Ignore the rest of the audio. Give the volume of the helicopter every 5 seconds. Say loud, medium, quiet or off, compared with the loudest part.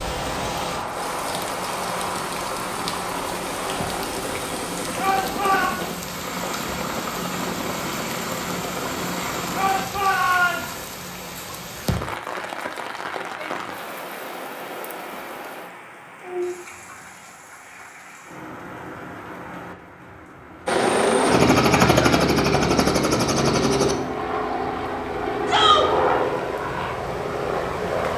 medium, medium, off, off, loud, medium.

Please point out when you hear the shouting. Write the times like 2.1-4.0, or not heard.
5.0-5.7, 9.6-10.8, 25.4-25.9.